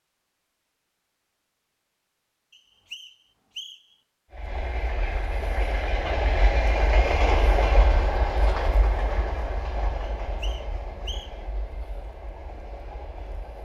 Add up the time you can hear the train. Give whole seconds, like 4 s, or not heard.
9 s.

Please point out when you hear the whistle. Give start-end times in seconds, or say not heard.
2.5-4.0, 10.2-11.4.